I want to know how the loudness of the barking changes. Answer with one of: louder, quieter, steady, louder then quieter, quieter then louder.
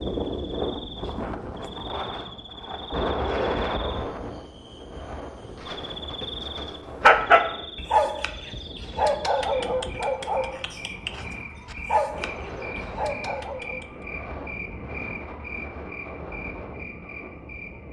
quieter then louder.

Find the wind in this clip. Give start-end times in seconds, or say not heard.
0.0-17.8.